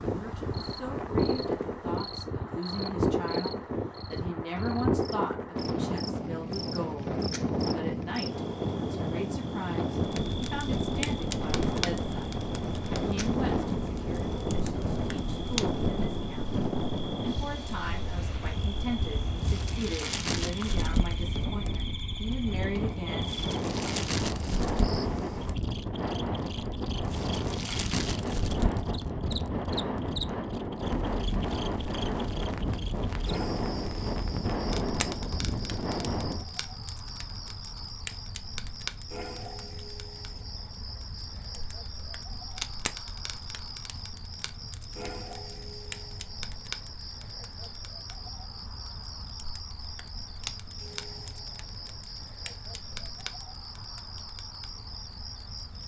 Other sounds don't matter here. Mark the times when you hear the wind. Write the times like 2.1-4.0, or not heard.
0.0-36.5.